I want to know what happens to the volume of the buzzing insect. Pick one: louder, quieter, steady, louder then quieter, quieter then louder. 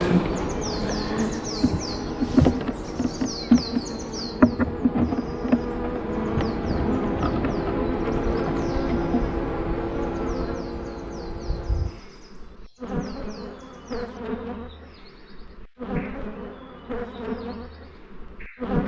quieter.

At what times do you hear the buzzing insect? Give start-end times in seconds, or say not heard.
0.0-18.8.